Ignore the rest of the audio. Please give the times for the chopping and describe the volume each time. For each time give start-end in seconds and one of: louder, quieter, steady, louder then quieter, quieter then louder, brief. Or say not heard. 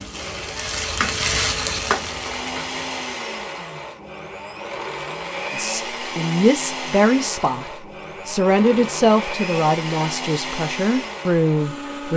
not heard.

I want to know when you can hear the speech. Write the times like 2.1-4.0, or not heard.
5.5-12.1.